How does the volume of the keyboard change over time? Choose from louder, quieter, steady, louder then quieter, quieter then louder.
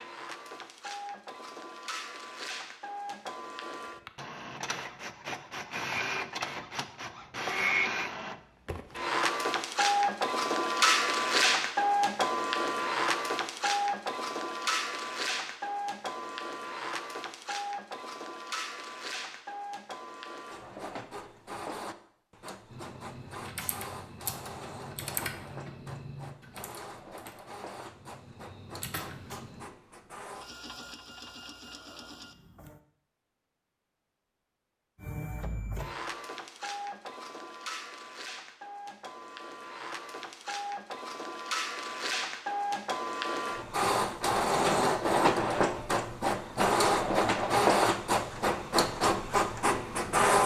quieter then louder.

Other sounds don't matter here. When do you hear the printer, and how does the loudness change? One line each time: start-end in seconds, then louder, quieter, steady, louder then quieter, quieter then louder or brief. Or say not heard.
0.0-32.8 louder then quieter
35.0-50.4 louder.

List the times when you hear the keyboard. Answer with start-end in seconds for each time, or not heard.
22.7-29.6.